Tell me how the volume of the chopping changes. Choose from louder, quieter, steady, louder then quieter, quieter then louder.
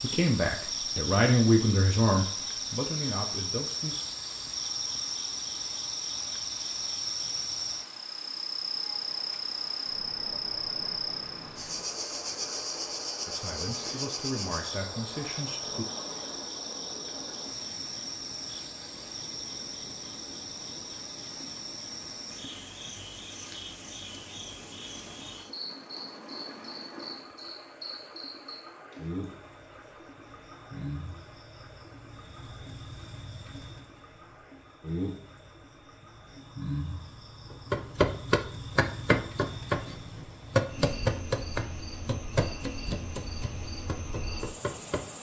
quieter.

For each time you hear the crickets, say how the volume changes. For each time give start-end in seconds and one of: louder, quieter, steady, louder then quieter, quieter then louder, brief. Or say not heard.
0.0-45.1 quieter.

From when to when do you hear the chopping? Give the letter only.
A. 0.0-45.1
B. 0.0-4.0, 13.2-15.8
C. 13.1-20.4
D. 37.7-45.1
D.